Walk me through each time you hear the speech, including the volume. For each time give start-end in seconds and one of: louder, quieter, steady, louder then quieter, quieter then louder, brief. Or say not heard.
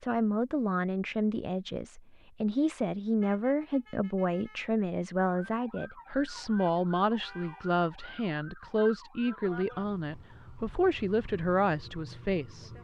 0.0-12.7 steady.